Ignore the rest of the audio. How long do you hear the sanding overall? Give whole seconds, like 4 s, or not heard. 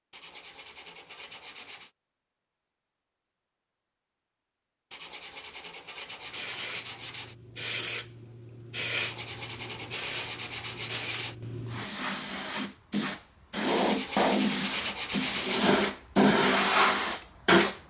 9 s.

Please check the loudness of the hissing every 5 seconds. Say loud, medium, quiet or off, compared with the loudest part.
off, quiet, medium, loud.